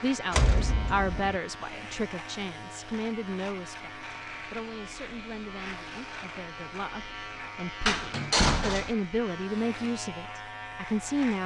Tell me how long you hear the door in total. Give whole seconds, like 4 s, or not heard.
2 s.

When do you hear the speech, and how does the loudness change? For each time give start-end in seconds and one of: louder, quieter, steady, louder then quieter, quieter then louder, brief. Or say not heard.
0.0-11.4 quieter then louder.